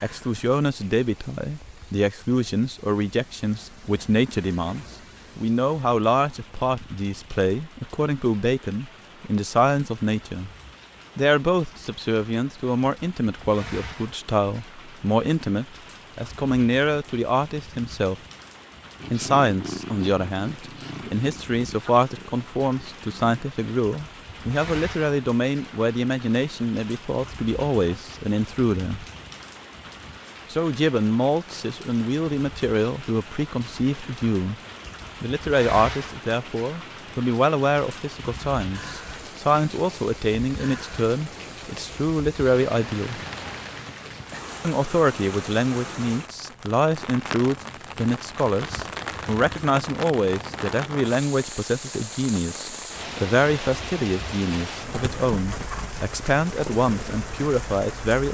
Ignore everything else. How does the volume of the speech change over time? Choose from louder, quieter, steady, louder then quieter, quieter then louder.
steady.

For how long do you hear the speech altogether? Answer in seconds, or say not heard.
53 s.